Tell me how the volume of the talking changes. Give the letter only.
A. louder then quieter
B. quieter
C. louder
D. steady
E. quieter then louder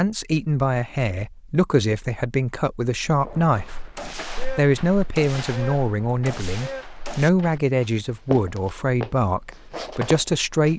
D.